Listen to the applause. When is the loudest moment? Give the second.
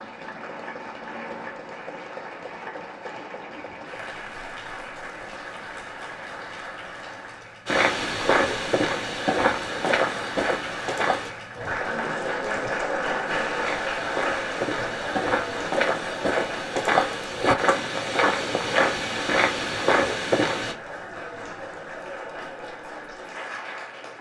13 s.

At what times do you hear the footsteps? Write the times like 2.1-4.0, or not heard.
7.7-11.3, 13.2-20.8.